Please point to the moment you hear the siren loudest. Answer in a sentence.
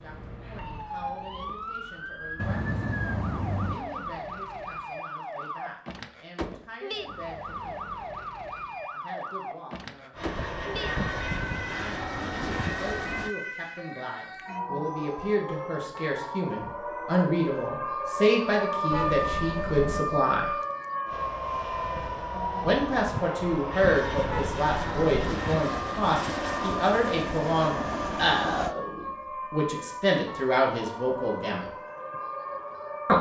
The volume of the siren peaks at 19 seconds.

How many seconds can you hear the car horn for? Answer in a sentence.
The car horn can be heard for 4 seconds in total.